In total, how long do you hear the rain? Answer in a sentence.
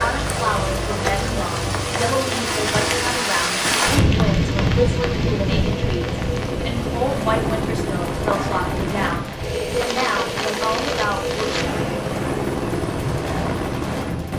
You can hear the rain for 14 seconds altogether.